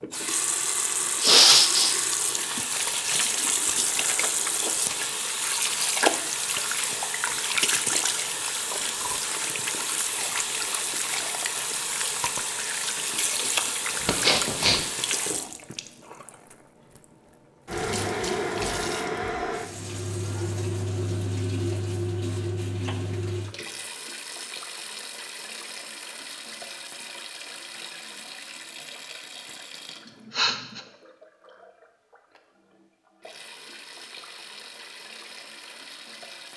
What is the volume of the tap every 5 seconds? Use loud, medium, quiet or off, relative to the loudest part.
loud, loud, loud, loud, medium, quiet, quiet, quiet.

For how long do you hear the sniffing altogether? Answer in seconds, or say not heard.
2 s.